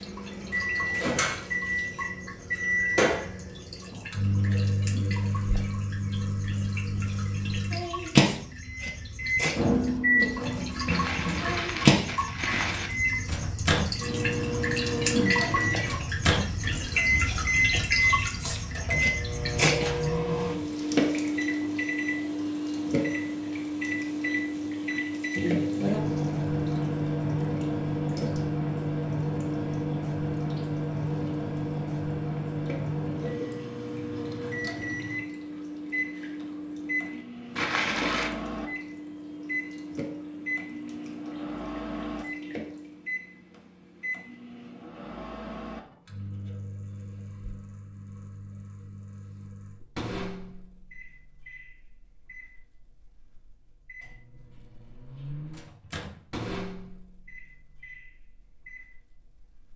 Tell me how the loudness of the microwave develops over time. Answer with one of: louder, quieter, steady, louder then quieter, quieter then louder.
quieter.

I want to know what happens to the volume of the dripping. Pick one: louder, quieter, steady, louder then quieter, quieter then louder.
louder then quieter.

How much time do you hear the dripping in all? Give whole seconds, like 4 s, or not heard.
43 s.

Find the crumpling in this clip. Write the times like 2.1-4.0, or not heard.
10.8-12.9, 37.5-38.3.